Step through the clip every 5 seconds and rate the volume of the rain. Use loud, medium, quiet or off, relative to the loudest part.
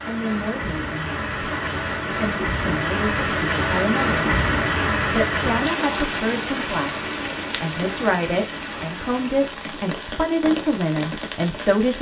loud, loud, medium.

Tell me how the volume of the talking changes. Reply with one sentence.
The loudness of the talking goes up.